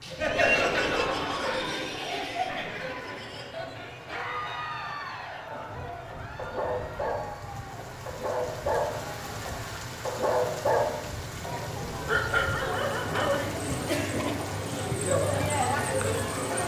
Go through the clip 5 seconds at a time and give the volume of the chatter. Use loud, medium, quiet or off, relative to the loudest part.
loud, quiet, medium, loud.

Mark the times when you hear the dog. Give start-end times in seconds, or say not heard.
5.5-13.4.